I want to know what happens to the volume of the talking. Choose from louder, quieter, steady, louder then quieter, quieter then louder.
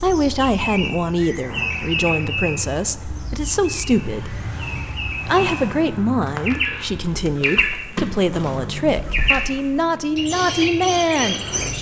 steady.